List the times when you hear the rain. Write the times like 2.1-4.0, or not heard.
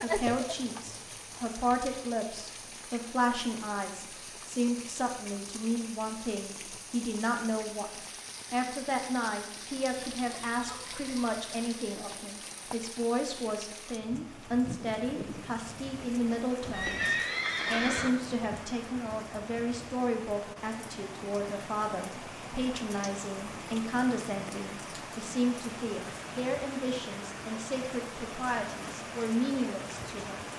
0.0-30.5.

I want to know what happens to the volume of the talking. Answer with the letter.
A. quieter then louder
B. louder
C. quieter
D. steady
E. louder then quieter
D.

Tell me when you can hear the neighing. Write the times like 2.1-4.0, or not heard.
16.7-18.1.